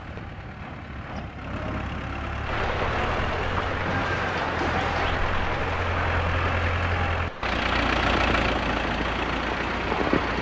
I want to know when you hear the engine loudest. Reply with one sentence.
The loudest moment of the engine is at 8 seconds.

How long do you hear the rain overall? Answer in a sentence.
The rain can be heard for 8 seconds in total.